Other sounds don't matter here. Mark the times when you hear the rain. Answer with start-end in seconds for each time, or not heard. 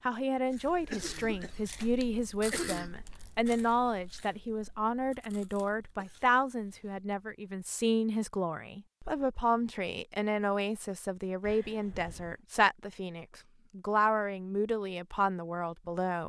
not heard.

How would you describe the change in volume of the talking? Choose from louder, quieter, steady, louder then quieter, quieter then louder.
steady.